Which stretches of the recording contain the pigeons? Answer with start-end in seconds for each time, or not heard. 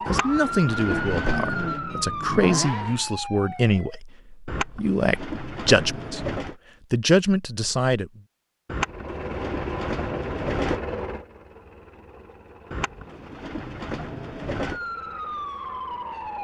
0.1-1.8, 4.5-6.5, 8.7-10.8, 12.7-14.8.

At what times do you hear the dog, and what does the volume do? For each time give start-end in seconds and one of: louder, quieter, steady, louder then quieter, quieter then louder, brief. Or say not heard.
not heard.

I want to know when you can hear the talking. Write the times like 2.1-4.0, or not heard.
0.1-8.2.